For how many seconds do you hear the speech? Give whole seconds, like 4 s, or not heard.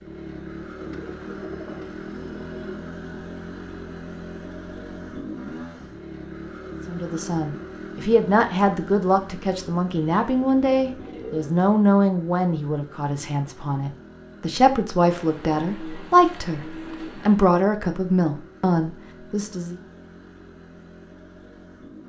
13 s.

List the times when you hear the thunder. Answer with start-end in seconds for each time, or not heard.
not heard.